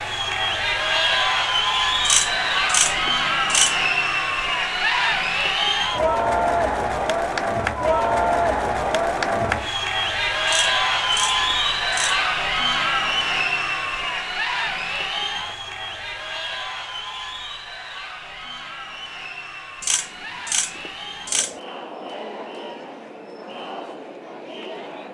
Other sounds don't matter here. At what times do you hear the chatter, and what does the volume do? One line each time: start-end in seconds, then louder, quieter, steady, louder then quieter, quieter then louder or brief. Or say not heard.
0.0-25.0 quieter.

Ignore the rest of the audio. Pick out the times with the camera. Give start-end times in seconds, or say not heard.
2.0-3.8, 10.4-12.2, 19.8-21.6.